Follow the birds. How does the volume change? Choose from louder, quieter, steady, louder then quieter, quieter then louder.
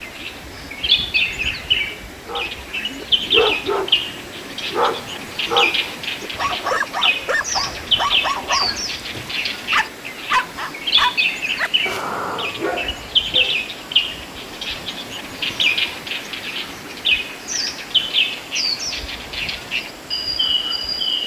steady.